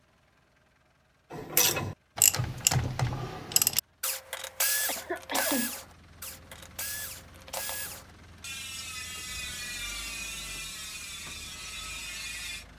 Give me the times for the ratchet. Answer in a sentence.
The ratchet can be heard from 1.3 to 12.7 s.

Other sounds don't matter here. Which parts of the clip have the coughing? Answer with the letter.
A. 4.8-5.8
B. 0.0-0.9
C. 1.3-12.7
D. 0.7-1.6
A.